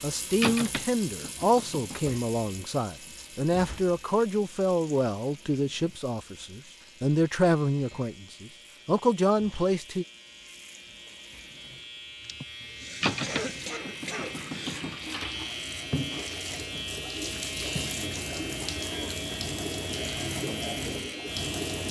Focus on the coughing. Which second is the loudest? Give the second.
13 s.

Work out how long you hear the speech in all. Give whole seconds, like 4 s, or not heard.
10 s.